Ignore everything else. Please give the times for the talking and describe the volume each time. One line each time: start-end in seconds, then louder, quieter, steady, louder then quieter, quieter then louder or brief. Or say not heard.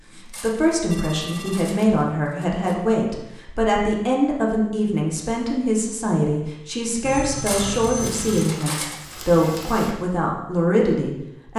0.1-11.5 steady.